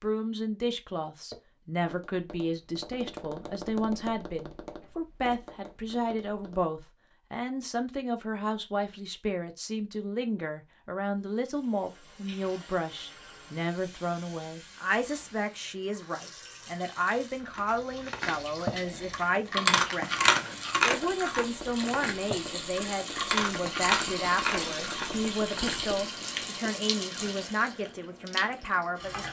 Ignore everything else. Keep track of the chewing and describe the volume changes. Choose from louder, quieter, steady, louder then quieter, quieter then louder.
quieter.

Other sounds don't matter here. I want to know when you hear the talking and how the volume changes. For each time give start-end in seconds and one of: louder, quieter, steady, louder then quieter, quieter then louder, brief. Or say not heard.
0.0-29.2 steady.